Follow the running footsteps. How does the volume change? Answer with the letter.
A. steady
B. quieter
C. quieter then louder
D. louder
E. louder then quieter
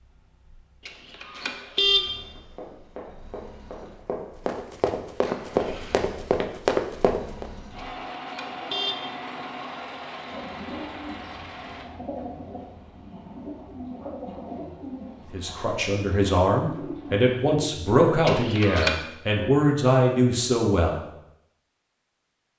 D.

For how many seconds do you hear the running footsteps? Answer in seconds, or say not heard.
5 s.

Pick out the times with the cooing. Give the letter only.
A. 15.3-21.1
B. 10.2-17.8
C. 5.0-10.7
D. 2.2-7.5
B.